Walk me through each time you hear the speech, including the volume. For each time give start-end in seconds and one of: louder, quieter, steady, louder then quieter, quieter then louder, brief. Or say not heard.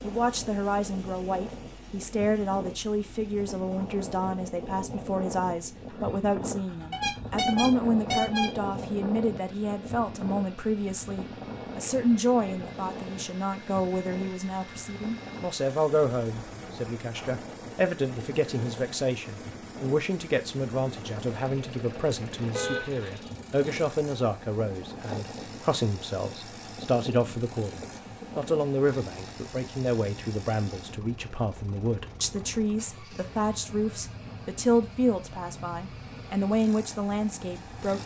0.0-38.0 steady.